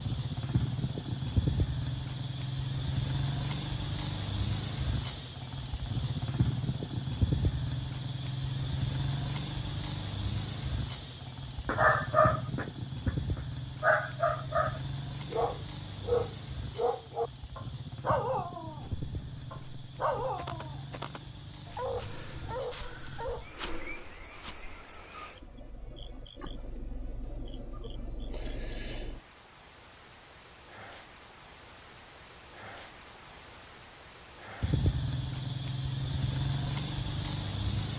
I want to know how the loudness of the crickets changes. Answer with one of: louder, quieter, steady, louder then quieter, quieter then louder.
quieter then louder.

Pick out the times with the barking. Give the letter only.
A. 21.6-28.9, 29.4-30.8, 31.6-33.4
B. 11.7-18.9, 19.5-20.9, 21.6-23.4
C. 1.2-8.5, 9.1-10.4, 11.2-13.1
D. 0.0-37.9
B.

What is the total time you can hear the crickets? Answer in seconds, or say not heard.
38 s.